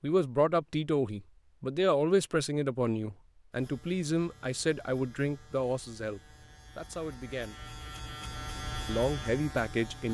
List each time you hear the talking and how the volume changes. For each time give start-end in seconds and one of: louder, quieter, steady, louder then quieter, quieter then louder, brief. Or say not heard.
0.0-7.6 quieter
8.8-10.0 brief.